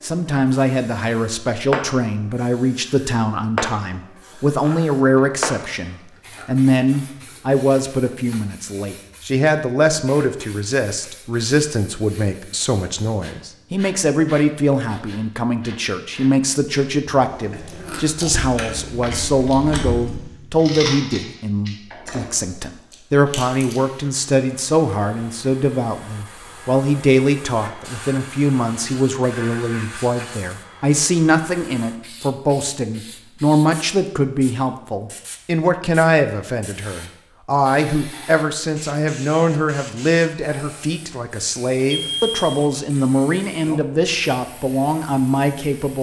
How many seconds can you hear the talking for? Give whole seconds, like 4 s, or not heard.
46 s.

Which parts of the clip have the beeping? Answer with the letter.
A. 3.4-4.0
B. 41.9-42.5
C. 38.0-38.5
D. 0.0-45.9
B.